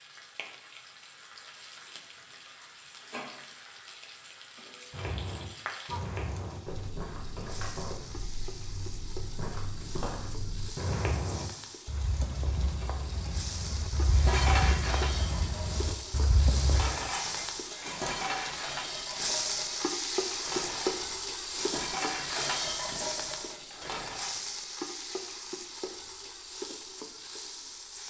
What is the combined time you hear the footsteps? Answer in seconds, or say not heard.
12 s.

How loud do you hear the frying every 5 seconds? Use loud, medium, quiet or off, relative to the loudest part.
quiet, medium, medium, loud, loud, medium.